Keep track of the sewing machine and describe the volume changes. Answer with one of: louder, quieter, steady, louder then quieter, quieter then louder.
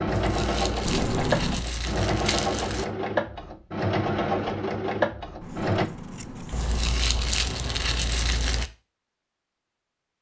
steady.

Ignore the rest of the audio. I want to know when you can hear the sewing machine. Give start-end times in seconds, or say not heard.
0.0-5.9.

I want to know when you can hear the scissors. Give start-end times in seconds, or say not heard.
0.8-1.6, 5.4-6.8.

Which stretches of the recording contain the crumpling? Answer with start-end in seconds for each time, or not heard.
0.1-2.9, 6.5-8.7.